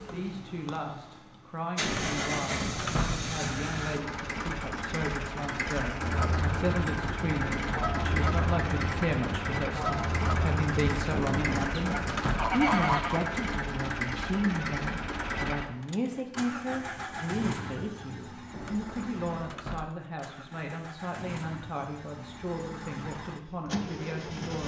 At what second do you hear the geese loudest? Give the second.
13 s.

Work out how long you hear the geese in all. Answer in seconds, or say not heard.
7 s.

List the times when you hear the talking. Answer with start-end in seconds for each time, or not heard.
0.1-24.6.